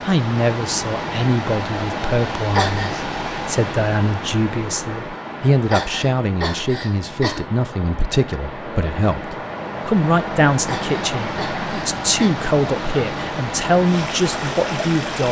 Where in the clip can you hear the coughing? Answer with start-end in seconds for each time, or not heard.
2.5-3.0, 5.7-7.5, 10.6-12.3.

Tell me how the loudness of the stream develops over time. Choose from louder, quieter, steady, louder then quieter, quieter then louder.
quieter then louder.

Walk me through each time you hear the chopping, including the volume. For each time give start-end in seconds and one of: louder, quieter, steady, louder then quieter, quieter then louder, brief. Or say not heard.
not heard.